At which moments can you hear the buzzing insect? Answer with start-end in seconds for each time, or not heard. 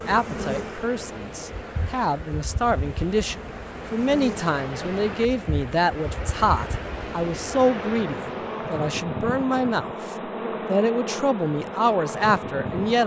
0.0-13.0.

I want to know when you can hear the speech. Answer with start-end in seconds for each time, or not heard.
0.1-13.0.